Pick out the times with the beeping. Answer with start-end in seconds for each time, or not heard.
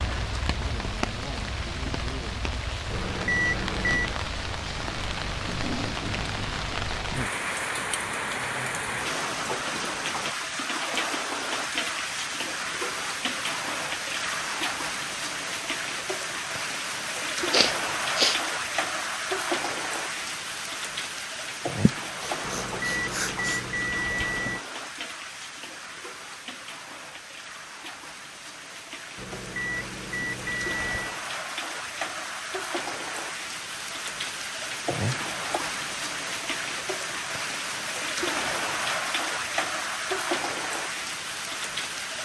2.9-4.2, 22.4-24.6, 29.1-31.2.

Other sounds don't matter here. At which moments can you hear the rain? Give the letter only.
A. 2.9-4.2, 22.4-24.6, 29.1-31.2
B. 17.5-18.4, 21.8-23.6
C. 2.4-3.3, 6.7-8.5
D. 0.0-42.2
D.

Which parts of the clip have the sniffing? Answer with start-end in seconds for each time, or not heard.
17.5-18.4, 21.8-23.6.